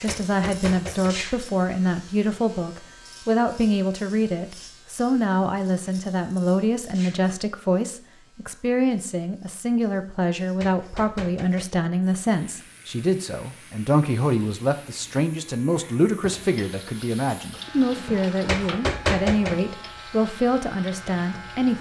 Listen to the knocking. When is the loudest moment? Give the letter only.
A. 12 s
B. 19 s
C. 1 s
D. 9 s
B.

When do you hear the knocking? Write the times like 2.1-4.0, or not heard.
0.1-1.1, 10.6-11.8, 18.4-19.6.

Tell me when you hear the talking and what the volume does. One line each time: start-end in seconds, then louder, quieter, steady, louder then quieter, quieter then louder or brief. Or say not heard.
0.0-21.7 steady.